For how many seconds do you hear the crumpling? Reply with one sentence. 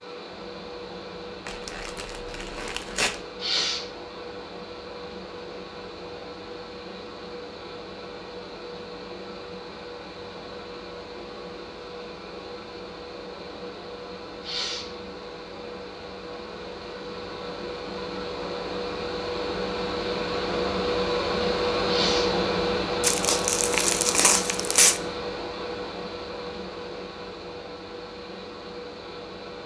You can hear the crumpling for 4 seconds altogether.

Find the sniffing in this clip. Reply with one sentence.
The sniffing can be heard from 3.4 to 3.9 s, from 14.4 to 14.9 s and from 21.9 to 22.4 s.